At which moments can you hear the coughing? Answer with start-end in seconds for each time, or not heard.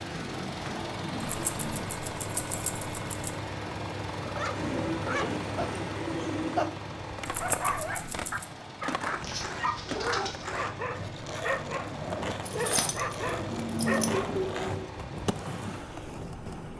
not heard.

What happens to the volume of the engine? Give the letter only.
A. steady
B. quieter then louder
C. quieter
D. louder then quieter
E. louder
C.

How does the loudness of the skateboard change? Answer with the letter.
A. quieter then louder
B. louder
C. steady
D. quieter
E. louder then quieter
C.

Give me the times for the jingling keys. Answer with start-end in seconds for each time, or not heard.
1.2-3.3, 7.2-8.4, 12.4-14.2.